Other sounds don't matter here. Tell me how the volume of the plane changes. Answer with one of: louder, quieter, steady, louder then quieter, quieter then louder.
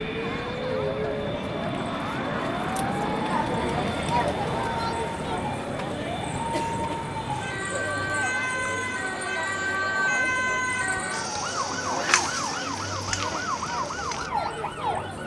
quieter.